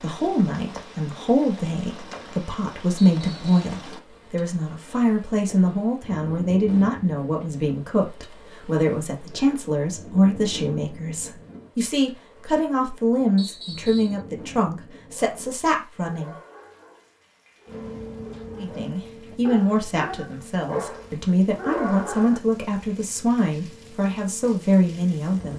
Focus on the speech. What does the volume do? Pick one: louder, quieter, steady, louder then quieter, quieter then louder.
steady.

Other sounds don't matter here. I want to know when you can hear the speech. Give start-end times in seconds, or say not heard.
0.0-16.4, 18.6-25.5.